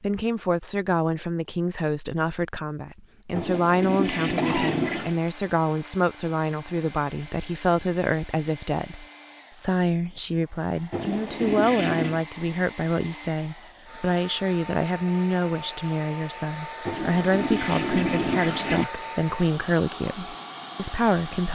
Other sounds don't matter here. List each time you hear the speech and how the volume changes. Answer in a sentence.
The speech can be heard from 0.0 to 21.5 s, at a steady volume.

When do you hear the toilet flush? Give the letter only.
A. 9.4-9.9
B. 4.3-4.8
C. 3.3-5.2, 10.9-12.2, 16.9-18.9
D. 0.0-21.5
C.